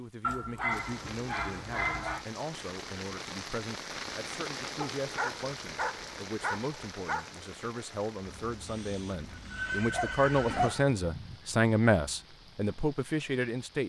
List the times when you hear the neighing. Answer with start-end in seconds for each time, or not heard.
8.2-10.9.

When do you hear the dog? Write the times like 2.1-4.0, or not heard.
0.2-2.2, 4.8-7.3, 9.8-11.6.